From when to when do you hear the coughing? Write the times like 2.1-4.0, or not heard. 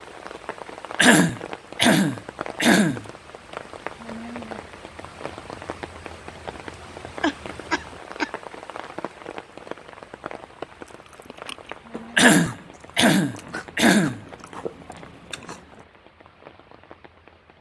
0.9-3.0, 7.2-8.3, 12.2-14.2.